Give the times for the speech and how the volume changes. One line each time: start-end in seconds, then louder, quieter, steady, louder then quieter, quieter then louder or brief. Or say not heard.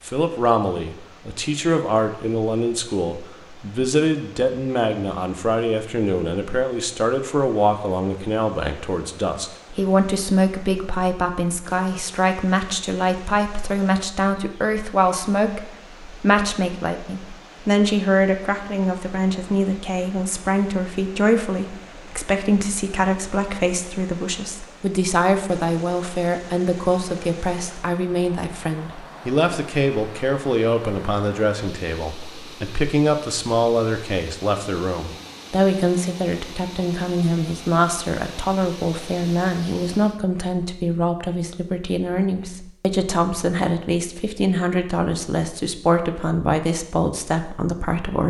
0.1-48.2 steady.